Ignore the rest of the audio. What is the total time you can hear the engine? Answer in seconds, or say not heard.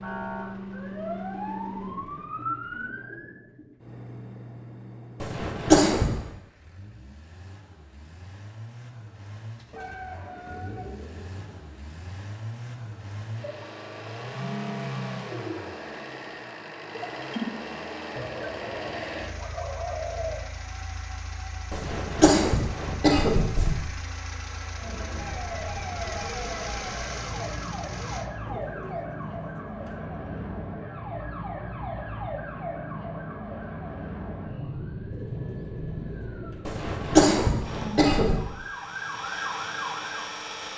31 s.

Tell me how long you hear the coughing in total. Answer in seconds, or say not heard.
5 s.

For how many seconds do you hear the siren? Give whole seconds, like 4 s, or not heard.
19 s.